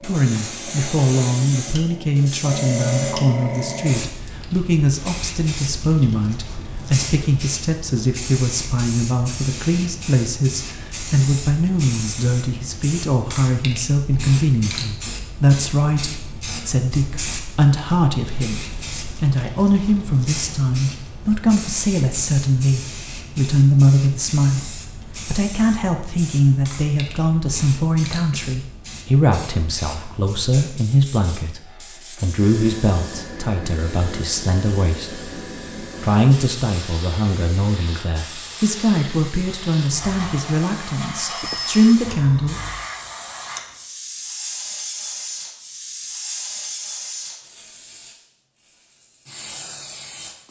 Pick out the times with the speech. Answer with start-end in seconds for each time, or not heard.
0.0-35.2, 36.0-42.6.